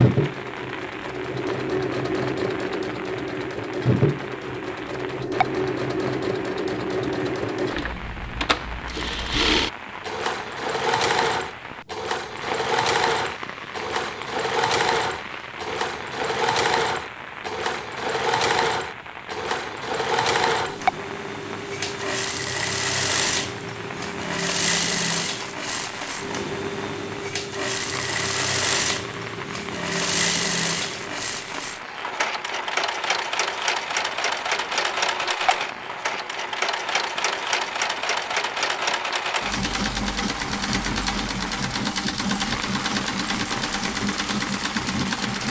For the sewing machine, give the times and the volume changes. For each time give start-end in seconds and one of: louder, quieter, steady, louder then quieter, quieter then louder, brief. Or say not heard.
0.0-45.4 steady.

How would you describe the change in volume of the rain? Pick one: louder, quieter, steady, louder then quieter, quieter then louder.
steady.